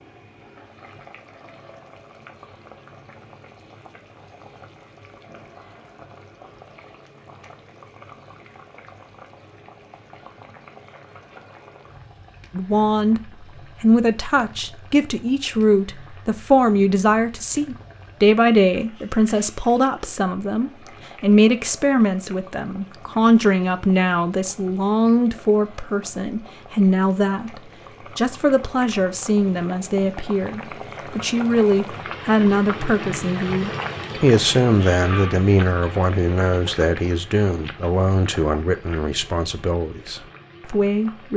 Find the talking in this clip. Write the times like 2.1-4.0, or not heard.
12.5-41.3.